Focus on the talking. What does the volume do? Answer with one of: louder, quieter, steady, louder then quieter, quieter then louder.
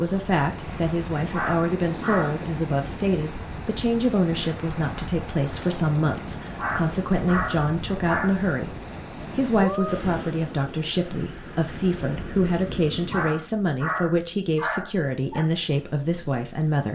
steady.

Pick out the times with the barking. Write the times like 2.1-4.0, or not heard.
1.2-2.4, 6.5-8.4, 13.1-15.4.